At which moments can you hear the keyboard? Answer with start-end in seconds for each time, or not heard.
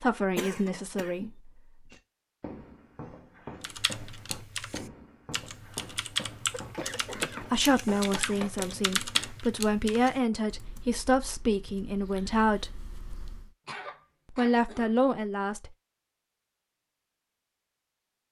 3.6-13.5.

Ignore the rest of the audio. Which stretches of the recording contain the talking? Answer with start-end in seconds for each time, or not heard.
0.0-1.6, 7.4-12.8, 14.3-15.8.